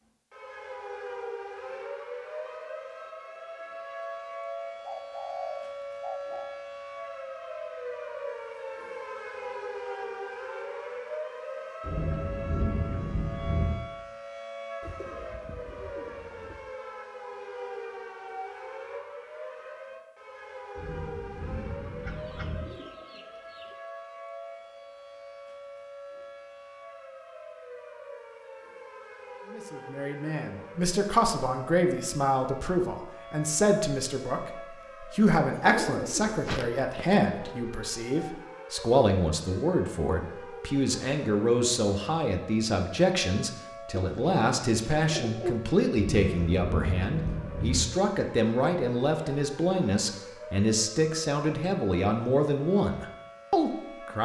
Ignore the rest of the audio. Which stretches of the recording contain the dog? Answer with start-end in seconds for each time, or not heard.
not heard.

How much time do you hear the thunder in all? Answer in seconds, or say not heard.
6 s.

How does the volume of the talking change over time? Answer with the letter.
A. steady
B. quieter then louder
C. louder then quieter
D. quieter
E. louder
A.